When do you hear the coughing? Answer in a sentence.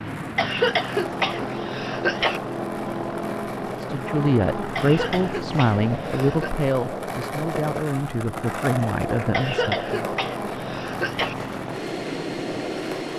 The coughing can be heard from 0.3 to 2.4 s, from 4.8 to 6.5 s and from 9.3 to 11.3 s.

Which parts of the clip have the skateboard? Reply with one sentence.
The skateboard can be heard from 0.0 to 13.1 s.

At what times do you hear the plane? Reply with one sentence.
You can hear the plane from 0.0 to 13.1 s.